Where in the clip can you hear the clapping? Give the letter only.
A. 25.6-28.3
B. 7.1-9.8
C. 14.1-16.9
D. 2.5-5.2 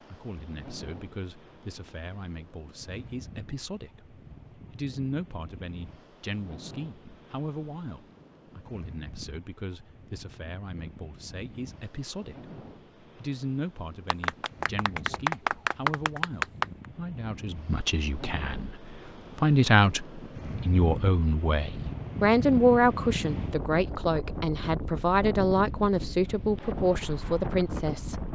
C.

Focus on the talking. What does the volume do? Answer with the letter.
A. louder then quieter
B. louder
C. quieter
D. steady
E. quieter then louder
B.